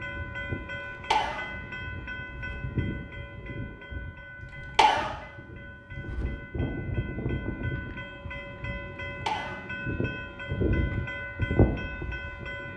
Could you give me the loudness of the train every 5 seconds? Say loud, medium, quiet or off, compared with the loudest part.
medium, medium, loud.